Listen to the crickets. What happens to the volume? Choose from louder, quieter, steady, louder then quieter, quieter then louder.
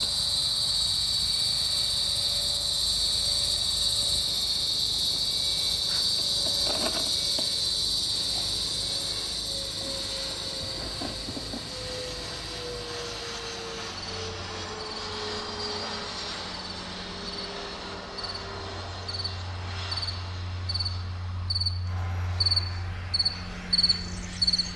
quieter then louder.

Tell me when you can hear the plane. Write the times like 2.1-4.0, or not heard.
0.0-24.7.